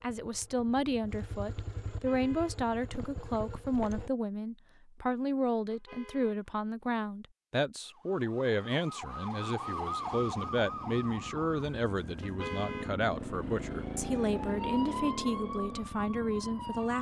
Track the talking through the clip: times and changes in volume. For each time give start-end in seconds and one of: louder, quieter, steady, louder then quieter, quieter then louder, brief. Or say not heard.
0.0-16.9 steady.